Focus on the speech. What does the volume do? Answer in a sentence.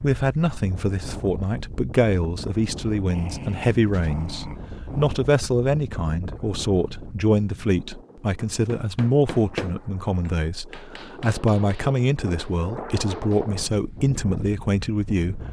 The volume of the speech stays about the same.